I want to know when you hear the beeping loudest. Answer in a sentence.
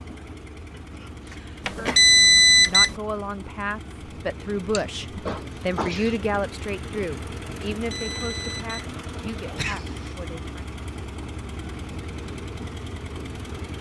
The loudest moment of the beeping is at 2 seconds.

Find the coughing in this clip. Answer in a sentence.
The coughing can be heard from 0.8 to 2.0 s, from 4.7 to 6.3 s and from 9.6 to 10.2 s.